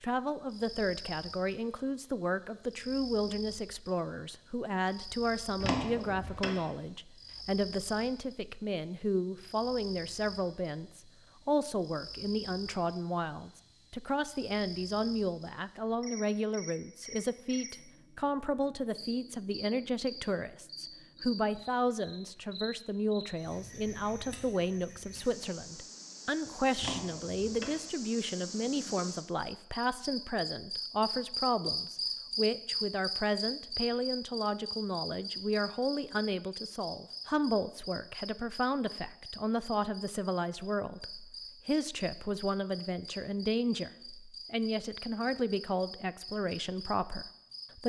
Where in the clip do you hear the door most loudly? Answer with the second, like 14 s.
6 s.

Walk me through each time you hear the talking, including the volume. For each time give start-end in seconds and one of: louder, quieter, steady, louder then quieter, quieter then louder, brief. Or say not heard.
0.0-47.8 steady.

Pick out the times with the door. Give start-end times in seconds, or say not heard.
5.6-6.6, 26.8-27.8.